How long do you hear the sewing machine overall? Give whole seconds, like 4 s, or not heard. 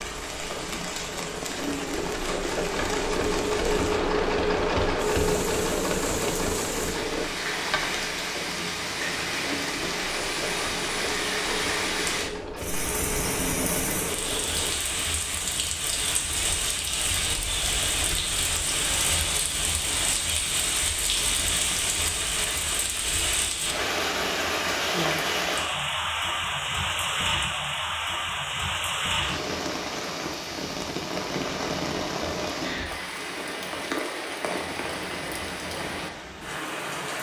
15 s.